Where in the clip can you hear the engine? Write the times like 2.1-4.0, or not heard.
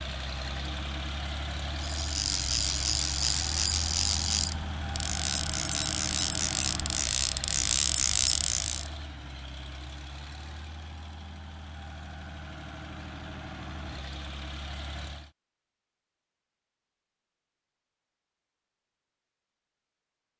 0.0-15.3.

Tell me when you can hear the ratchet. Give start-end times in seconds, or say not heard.
1.8-8.9.